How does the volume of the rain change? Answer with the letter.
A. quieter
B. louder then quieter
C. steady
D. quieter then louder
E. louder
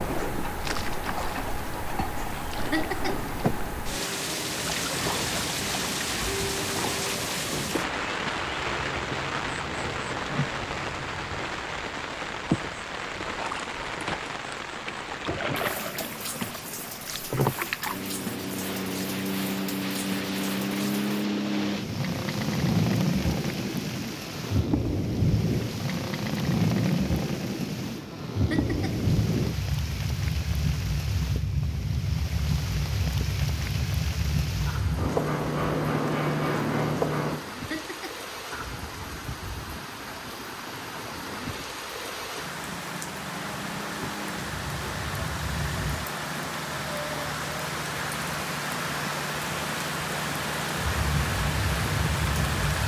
D.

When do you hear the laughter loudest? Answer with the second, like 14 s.
3 s.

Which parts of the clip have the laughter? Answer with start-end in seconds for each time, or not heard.
2.7-3.2, 28.5-29.0, 37.7-38.2.